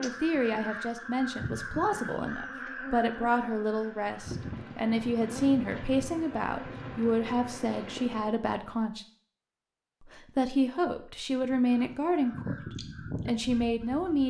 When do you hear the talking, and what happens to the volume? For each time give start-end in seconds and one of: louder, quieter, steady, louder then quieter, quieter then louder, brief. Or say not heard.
0.0-9.1 steady
10.1-14.2 quieter then louder.